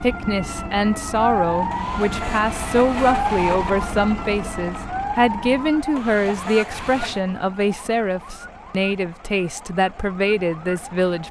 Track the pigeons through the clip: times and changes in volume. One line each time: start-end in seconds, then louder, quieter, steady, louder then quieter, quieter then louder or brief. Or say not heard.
not heard.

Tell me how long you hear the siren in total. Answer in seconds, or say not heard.
11 s.